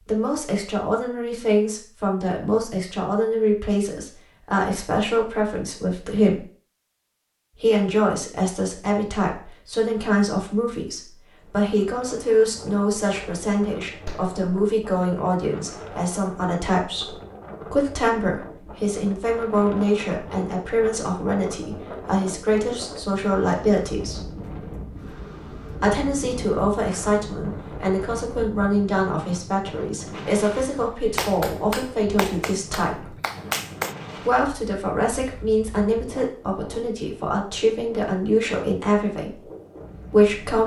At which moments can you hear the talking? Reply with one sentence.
The talking can be heard from 0.1 to 6.5 s, from 7.5 to 24.3 s, from 25.8 to 33.1 s, from 34.1 to 39.5 s and from 40.1 to 40.6 s.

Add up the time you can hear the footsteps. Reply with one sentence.
You can't hear the footsteps here.